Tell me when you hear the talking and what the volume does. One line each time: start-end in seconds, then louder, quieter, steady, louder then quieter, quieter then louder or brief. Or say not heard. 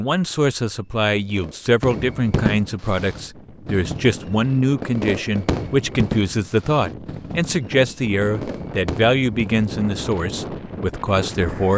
0.0-11.7 steady.